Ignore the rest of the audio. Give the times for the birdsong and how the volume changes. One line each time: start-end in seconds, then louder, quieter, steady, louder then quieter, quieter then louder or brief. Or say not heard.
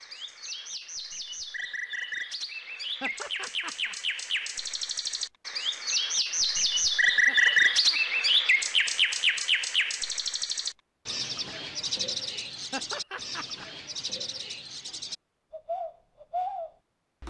0.0-17.2 louder then quieter.